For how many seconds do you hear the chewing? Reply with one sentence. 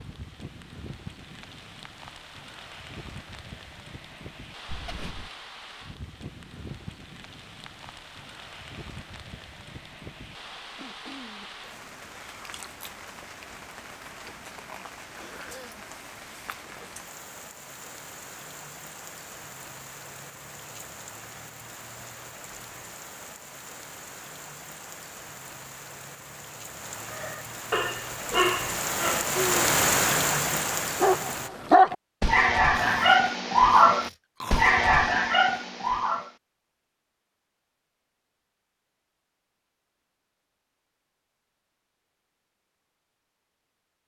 The chewing can't be heard in this clip.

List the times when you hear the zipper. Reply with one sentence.
You can hear the zipper from 4.7 to 5.3 s.